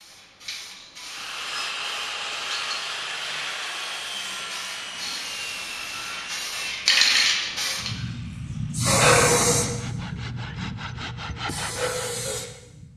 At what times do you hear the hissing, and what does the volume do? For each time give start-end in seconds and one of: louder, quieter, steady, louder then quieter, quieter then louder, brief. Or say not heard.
0.0-12.8 louder then quieter.